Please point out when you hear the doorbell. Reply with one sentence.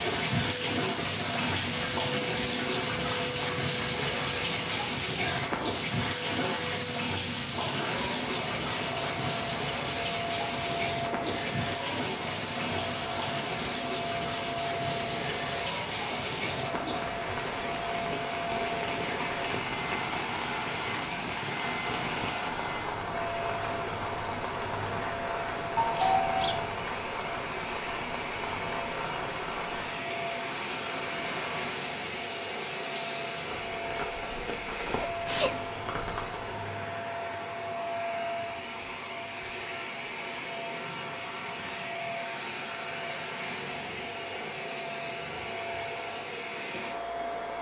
The doorbell can be heard from 25.8 to 26.6 s.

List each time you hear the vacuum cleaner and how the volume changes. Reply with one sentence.
You can hear the vacuum cleaner from 0.0 to 47.5 s, at a steady volume.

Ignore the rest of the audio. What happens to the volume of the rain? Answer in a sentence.
The volume of the rain goes down.